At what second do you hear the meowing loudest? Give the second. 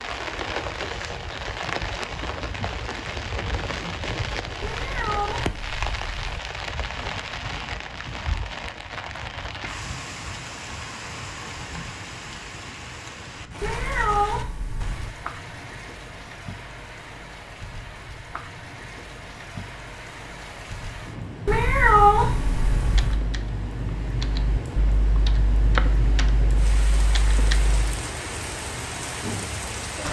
22 s.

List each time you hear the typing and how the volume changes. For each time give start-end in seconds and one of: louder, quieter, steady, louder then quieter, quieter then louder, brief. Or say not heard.
22.8-27.8 louder then quieter.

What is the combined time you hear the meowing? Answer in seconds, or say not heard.
5 s.